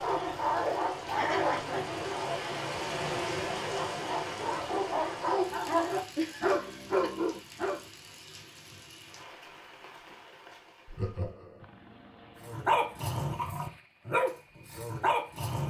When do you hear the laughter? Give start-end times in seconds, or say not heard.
1.1-1.9, 6.2-7.1, 10.8-11.7.